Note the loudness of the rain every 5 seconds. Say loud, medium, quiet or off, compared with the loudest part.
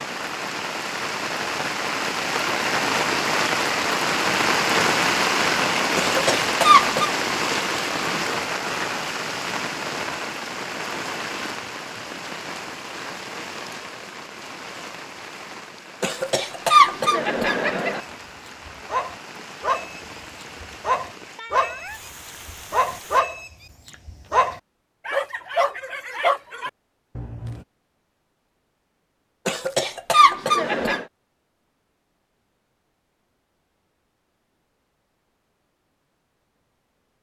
loud, loud, medium, quiet, quiet, off, off, off.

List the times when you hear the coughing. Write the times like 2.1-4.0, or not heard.
6.0-7.1, 16.0-18.0, 29.4-31.1.